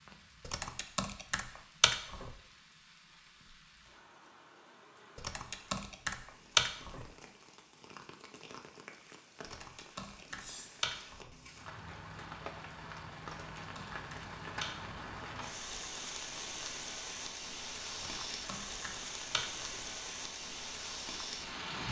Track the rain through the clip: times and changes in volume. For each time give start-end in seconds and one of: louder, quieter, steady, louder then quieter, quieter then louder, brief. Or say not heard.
0.0-21.8 louder.